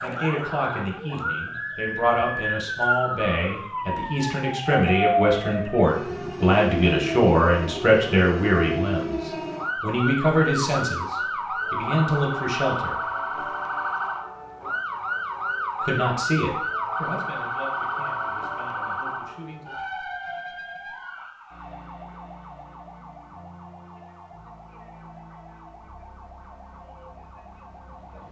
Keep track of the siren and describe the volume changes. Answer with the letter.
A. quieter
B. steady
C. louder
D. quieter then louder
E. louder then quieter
A.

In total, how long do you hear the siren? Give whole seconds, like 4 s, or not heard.
28 s.